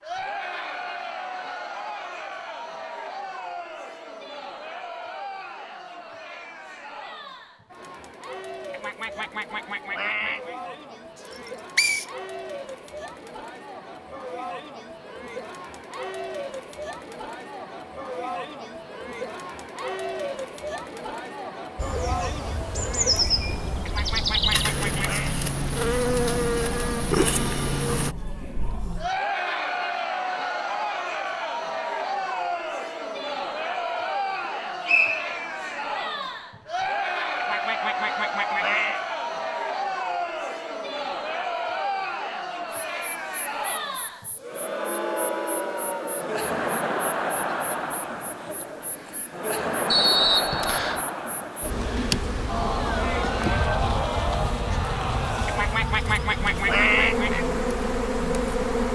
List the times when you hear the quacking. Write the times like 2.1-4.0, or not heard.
8.7-10.6, 23.9-25.4, 37.4-39.0, 55.5-57.5.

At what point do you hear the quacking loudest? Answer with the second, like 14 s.
57 s.